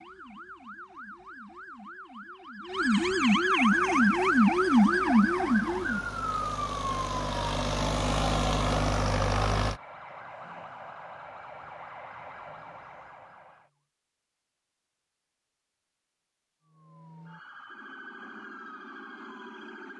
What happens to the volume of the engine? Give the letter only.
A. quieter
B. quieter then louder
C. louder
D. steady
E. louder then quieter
C.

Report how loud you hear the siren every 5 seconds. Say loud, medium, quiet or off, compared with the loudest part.
loud, loud, quiet, quiet.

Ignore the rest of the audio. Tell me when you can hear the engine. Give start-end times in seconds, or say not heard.
3.6-9.8.